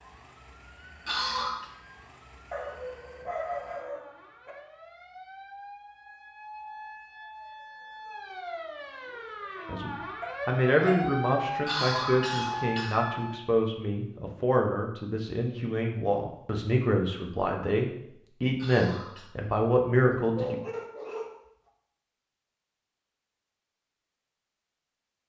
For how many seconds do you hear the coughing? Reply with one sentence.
The coughing can be heard for 3 seconds in total.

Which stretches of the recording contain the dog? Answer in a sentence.
The dog can be heard from 2.5 to 4.5 s, from 10.2 to 11.1 s and from 19.9 to 21.4 s.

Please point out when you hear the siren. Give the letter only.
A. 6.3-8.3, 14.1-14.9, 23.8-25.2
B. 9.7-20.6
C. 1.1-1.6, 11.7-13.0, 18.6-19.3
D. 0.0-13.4
D.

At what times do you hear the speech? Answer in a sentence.
The speech can be heard from 9.7 to 20.6 s.